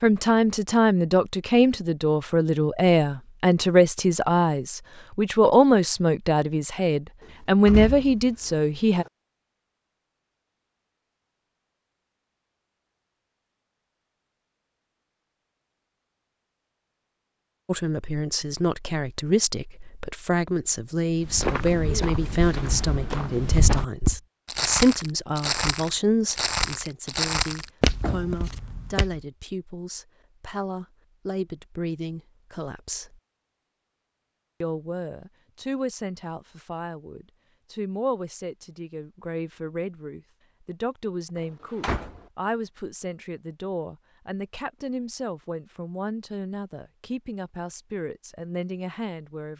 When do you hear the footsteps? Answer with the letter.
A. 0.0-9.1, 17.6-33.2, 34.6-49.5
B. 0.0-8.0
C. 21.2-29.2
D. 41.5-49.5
C.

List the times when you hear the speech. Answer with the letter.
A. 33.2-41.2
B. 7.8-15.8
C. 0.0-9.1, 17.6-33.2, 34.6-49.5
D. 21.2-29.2
C.